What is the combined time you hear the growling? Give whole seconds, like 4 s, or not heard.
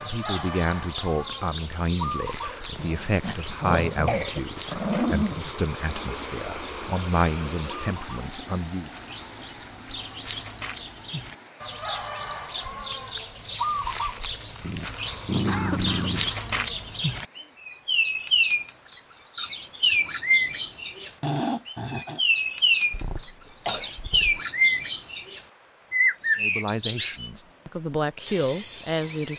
5 s.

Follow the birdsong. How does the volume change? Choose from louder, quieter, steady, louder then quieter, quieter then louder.
louder.